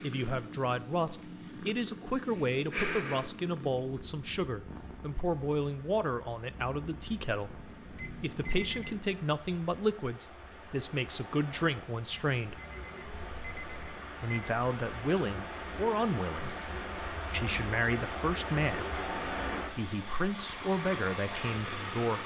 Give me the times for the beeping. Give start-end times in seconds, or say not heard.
8.0-9.0, 12.1-14.5.